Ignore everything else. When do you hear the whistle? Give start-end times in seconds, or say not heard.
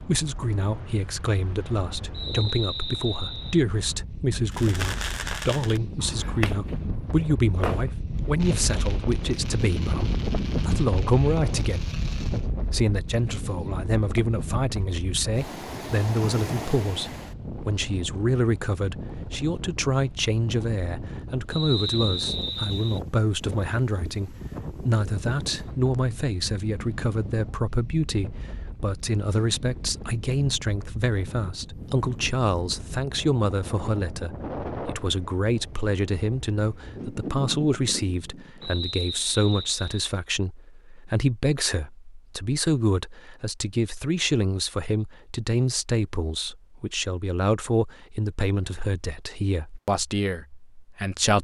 2.1-3.6, 21.5-23.0, 38.6-40.1.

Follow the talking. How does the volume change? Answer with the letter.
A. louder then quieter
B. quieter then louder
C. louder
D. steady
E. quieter
D.